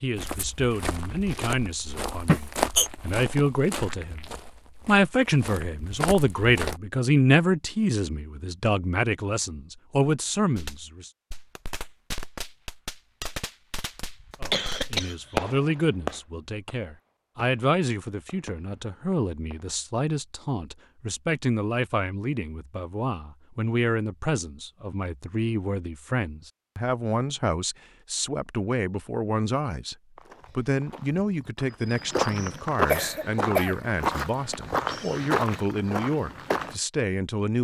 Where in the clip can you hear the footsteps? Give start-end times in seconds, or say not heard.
0.1-6.8, 30.1-36.8.